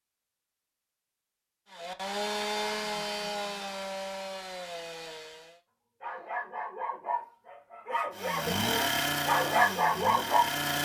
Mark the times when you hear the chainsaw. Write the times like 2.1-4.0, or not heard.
1.7-5.6, 8.1-10.7.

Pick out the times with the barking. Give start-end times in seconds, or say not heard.
6.0-10.5.